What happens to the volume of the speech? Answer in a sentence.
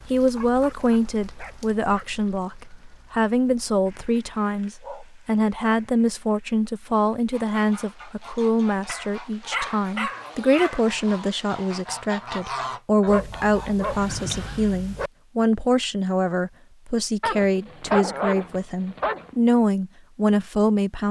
The loudness of the speech stays about the same.